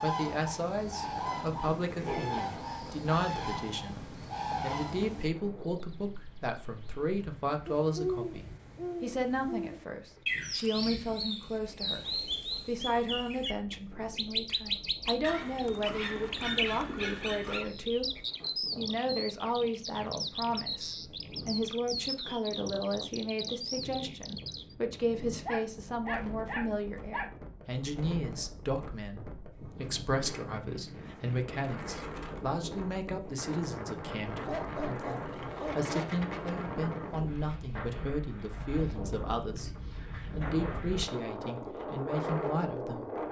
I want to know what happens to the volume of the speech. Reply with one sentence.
The loudness of the speech stays about the same.